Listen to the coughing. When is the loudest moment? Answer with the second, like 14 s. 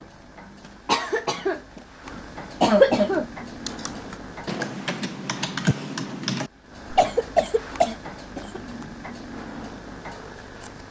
3 s.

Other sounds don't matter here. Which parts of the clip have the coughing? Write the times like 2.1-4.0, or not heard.
0.8-1.6, 2.6-3.2, 7.0-8.6.